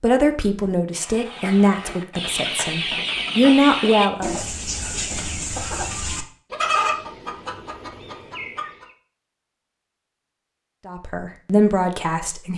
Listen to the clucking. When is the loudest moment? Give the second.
7 s.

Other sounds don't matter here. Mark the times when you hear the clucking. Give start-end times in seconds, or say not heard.
0.9-8.8.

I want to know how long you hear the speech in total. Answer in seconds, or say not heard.
6 s.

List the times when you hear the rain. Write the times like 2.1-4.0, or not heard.
not heard.